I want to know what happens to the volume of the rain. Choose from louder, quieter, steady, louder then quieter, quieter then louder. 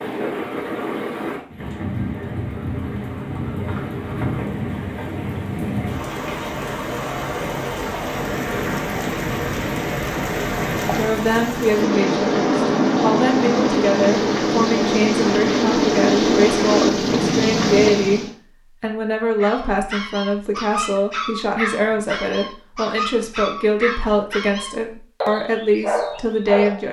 louder.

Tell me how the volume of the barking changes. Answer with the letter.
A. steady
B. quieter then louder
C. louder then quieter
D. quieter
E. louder
A.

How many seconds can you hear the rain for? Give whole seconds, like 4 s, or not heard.
18 s.